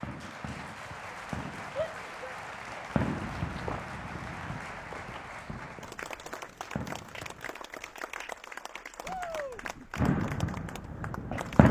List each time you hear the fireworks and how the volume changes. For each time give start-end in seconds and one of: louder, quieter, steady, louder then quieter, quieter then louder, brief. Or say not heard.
0.0-7.5 louder then quieter
9.9-11.6 brief.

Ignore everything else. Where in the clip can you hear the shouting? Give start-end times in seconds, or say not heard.
1.8-2.9, 9.0-9.6.